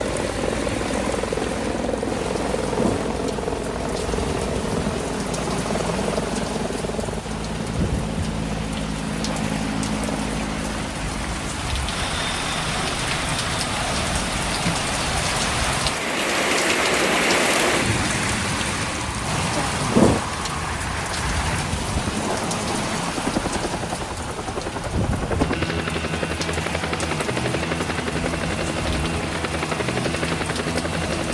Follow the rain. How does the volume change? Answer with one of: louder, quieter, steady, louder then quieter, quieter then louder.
louder then quieter.